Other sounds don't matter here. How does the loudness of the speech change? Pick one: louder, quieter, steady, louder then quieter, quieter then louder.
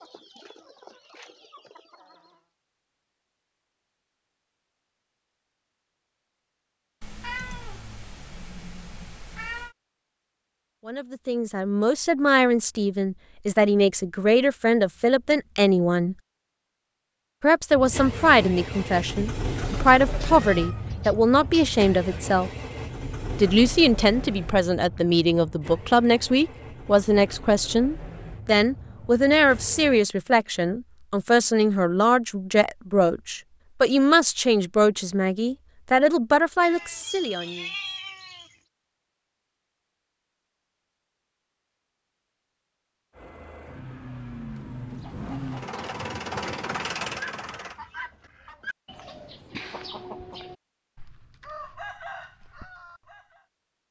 steady.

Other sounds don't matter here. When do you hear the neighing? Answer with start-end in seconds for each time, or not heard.
not heard.